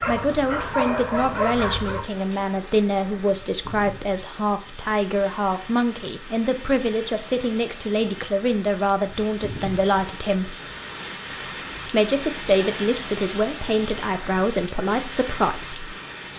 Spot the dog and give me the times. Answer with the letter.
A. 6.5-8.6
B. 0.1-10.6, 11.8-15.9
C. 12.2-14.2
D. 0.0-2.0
D.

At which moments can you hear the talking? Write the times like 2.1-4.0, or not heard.
0.1-10.6, 11.8-15.9.